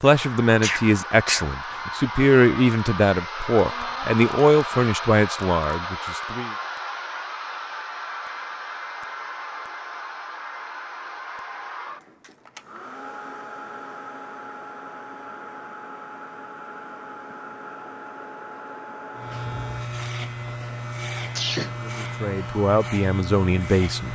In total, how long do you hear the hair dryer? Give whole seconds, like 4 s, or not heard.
24 s.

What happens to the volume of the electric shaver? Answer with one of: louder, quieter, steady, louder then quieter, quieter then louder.
steady.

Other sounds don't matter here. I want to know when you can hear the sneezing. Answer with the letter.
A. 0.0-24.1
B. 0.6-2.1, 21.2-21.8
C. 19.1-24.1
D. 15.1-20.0
B.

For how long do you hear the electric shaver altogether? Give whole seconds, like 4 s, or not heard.
5 s.